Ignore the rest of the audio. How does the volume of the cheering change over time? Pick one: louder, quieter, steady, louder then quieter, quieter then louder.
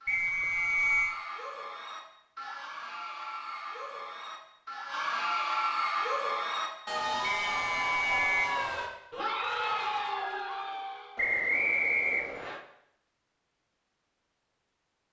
louder.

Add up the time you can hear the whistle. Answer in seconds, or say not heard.
4 s.